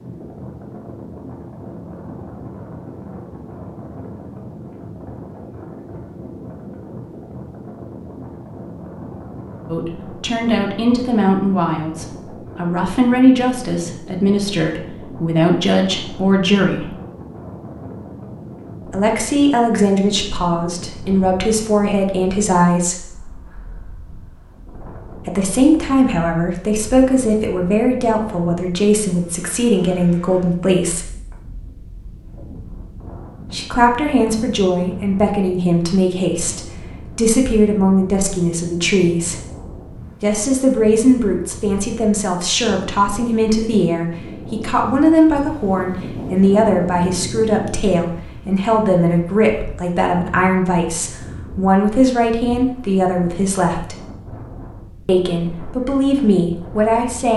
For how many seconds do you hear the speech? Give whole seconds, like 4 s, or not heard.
39 s.